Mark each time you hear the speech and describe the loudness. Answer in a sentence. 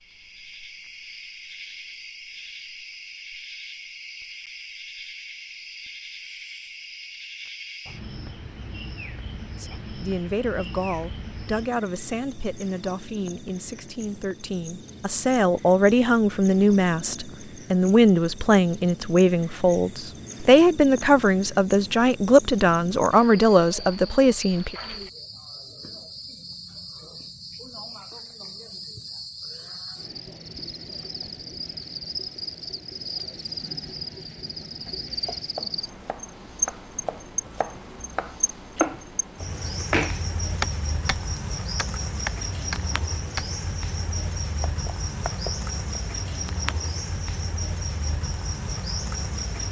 You can hear the speech from 9.6 to 24.8 s, getting louder.